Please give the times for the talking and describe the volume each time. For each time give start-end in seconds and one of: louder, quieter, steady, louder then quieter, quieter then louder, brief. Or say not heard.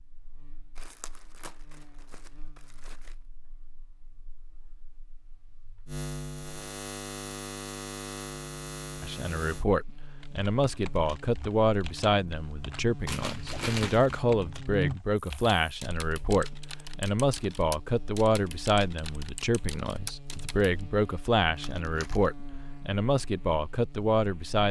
9.0-24.6 steady.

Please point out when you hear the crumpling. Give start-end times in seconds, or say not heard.
0.8-3.1, 13.1-14.2, 21.4-22.3.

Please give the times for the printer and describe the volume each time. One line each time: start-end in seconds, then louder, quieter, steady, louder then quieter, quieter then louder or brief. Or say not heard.
not heard.